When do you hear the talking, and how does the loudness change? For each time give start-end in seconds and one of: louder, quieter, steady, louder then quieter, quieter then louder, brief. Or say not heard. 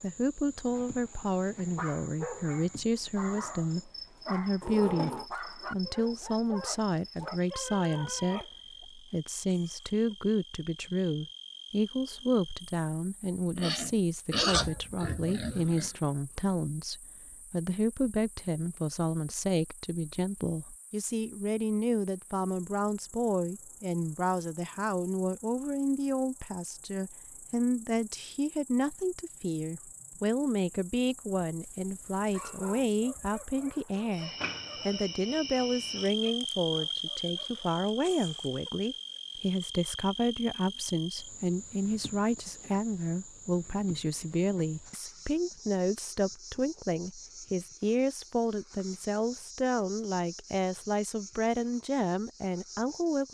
0.0-53.2 steady.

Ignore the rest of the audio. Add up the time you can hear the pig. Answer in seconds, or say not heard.
2 s.